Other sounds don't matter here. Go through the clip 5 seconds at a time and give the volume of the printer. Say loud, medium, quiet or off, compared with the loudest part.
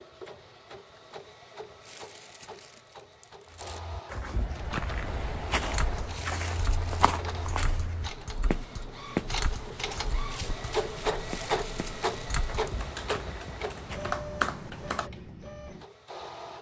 quiet, medium, loud, medium.